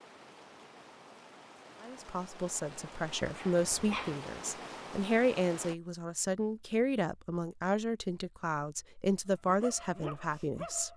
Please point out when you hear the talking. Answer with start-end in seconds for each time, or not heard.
1.8-10.9.